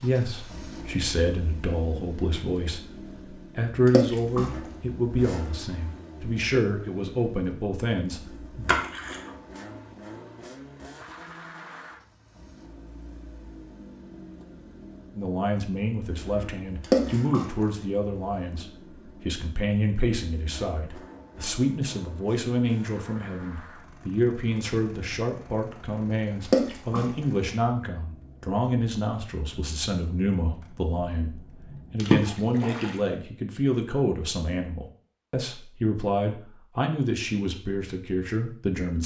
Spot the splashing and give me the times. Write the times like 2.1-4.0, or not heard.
3.9-4.5, 8.7-9.3, 16.8-17.4, 26.4-27.1, 32.0-33.0.